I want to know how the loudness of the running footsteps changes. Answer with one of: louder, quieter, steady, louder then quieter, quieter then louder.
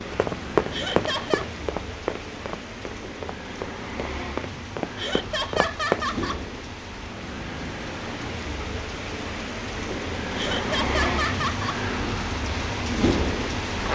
quieter then louder.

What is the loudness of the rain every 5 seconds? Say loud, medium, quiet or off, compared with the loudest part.
medium, medium, loud.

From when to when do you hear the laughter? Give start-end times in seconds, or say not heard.
0.7-1.4, 5.0-6.4, 10.3-11.8.